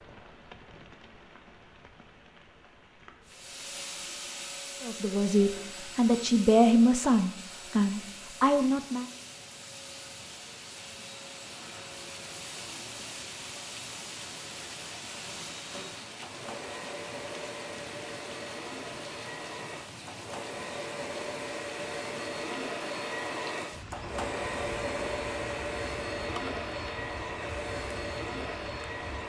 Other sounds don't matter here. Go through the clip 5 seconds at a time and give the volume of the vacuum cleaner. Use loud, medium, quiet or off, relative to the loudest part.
medium, medium, medium, medium, loud, loud.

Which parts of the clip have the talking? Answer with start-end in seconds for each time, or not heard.
4.8-9.1.